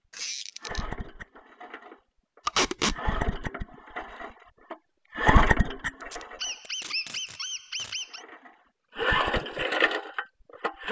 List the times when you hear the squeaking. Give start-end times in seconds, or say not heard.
0.1-0.8, 6.3-8.2.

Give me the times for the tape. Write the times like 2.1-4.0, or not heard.
2.5-3.0, 6.0-8.0.